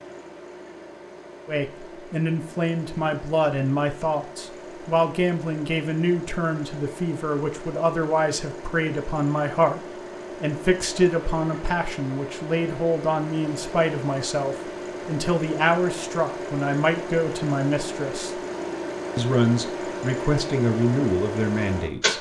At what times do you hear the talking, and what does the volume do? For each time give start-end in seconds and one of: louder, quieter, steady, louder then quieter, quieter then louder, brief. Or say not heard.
1.4-18.4 steady
19.1-22.1 brief.